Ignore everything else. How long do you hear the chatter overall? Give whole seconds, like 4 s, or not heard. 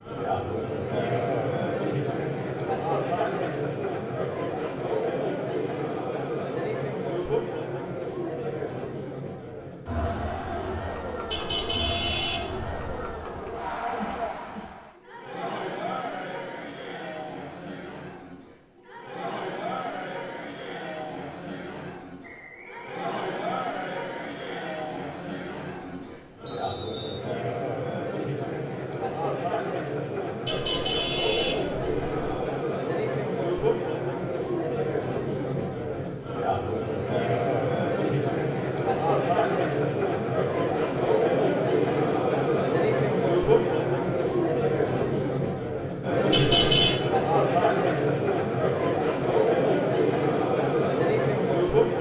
52 s.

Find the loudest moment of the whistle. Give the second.
27 s.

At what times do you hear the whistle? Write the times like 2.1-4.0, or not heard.
22.2-23.1, 26.4-27.2.